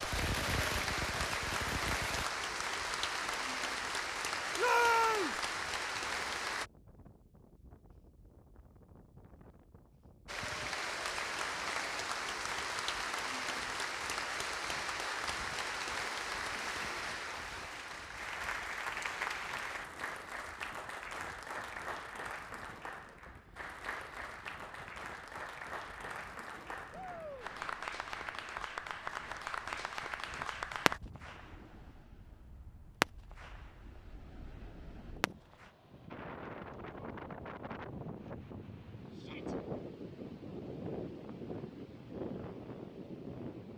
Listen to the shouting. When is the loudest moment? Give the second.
5 s.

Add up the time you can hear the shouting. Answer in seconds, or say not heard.
2 s.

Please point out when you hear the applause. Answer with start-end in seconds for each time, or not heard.
0.0-6.7, 10.2-31.0.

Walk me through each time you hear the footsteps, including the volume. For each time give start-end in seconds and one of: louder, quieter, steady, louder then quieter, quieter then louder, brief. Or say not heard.
not heard.